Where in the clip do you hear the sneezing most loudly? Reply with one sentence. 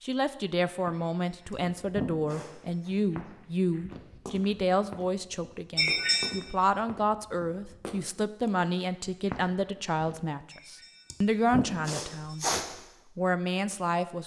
The loudest moment of the sneezing is at 6 seconds.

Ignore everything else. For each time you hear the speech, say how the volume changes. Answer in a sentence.
You can hear the speech from 0.0 to 12.4 s, at a steady volume; and briefly from 13.2 to 14.2 s.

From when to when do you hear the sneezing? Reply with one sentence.
The sneezing can be heard from 0.9 to 2.9 s, from 5.8 to 6.3 s and from 10.5 to 12.7 s.